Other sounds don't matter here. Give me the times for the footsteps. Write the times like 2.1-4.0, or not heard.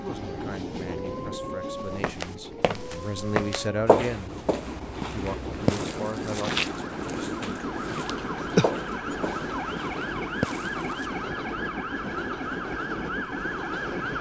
1.8-11.1.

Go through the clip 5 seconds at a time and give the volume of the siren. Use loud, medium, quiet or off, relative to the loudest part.
medium, loud, loud.